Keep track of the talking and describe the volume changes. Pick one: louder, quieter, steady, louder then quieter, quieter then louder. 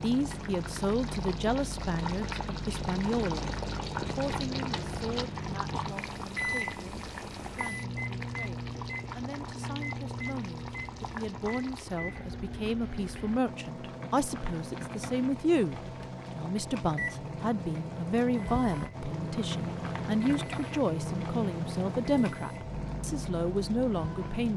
quieter then louder.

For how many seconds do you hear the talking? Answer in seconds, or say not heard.
24 s.